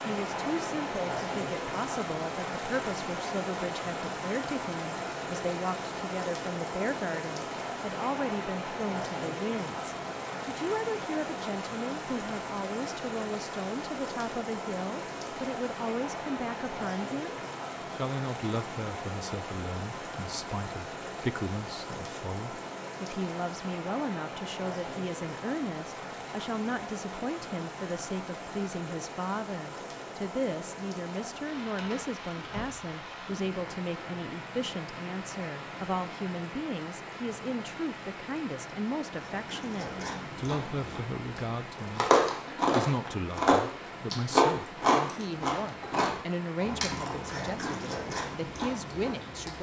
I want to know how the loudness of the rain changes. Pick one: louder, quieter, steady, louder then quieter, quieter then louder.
quieter.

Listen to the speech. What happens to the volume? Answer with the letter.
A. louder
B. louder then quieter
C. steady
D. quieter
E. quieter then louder
C.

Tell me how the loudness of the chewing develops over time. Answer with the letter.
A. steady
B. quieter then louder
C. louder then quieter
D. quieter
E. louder
C.